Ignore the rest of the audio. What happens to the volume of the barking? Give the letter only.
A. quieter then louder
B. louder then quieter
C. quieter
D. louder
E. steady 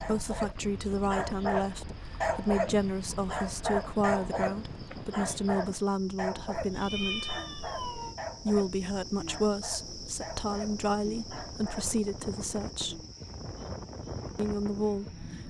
C.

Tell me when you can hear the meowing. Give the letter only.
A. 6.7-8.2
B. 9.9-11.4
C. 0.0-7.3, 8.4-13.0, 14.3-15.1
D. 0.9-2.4
A.